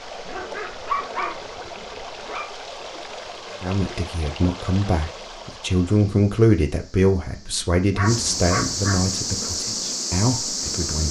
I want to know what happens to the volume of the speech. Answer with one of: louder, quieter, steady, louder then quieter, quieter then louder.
louder then quieter.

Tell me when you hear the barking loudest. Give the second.
1 s.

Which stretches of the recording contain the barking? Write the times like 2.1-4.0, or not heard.
0.2-2.5, 8.0-9.1.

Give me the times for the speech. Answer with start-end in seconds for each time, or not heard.
3.6-11.0.